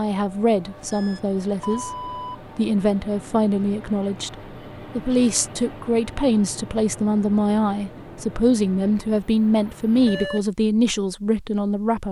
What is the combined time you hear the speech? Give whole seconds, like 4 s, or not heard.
12 s.